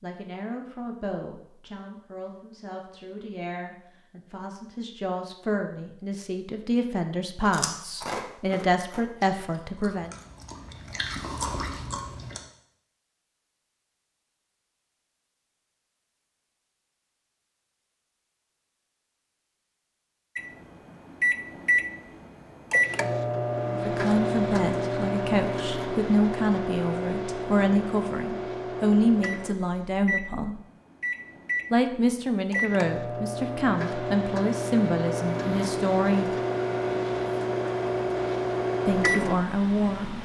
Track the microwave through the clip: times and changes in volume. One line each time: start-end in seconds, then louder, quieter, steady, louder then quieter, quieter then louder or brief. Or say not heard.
20.4-40.2 quieter then louder.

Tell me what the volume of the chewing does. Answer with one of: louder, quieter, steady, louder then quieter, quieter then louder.
quieter then louder.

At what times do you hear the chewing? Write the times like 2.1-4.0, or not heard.
7.4-12.4.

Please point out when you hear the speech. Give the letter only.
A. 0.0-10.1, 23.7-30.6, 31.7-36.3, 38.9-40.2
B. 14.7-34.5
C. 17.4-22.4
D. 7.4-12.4
A.